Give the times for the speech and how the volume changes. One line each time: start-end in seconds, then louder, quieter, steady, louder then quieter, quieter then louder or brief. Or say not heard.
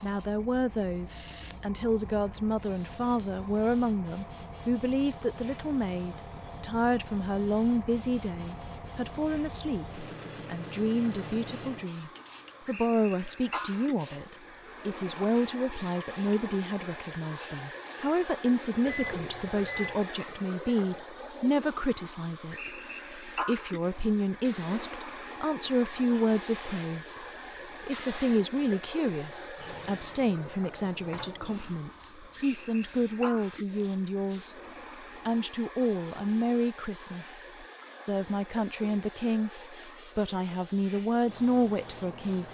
0.0-34.5 steady
35.2-42.5 quieter then louder.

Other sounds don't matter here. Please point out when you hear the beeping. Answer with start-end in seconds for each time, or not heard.
18.9-20.1.